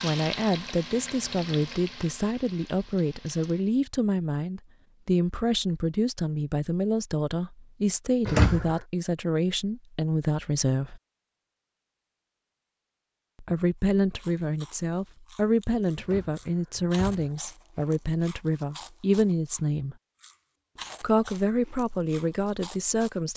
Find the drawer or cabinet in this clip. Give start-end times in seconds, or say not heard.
8.2-8.8, 16.0-17.3.